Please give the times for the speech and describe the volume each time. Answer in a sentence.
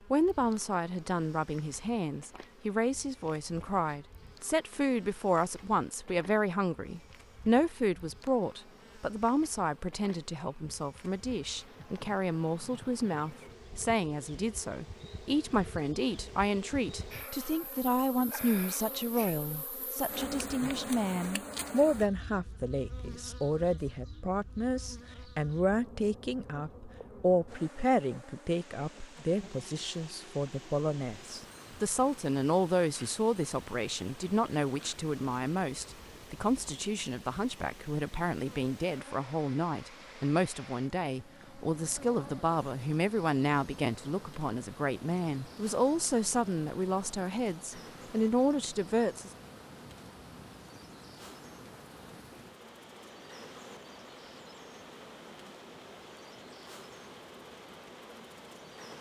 You can hear the speech from 0.1 to 49.3 s, at a steady volume.